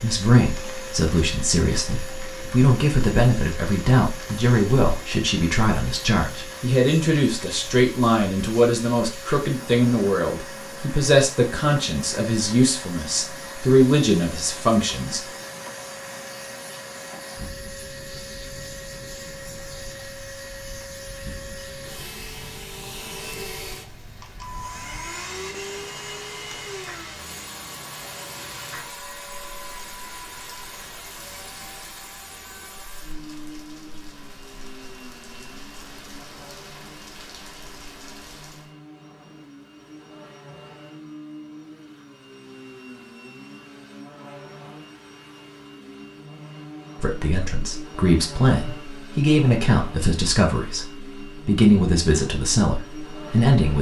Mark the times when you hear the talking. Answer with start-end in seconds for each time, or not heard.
0.0-15.2, 47.0-53.7.